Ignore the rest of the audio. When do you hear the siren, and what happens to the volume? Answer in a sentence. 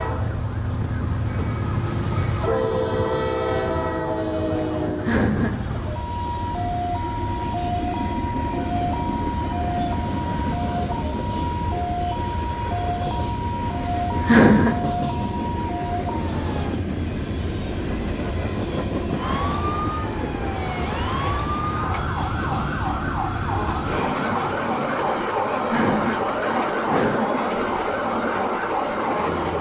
You can hear the siren from 0.0 to 16.8 s, at a steady volume; and from 19.1 to 29.5 s, at a steady volume.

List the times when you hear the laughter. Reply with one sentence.
The laughter can be heard from 4.8 to 5.8 s, from 14.1 to 14.8 s and from 25.5 to 27.4 s.